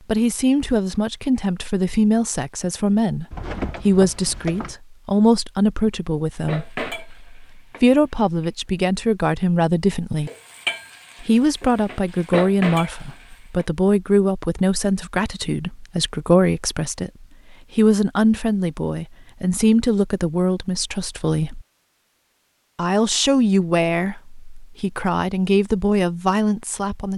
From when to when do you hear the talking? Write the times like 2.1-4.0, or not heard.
0.1-10.3, 11.2-21.6, 22.8-27.1.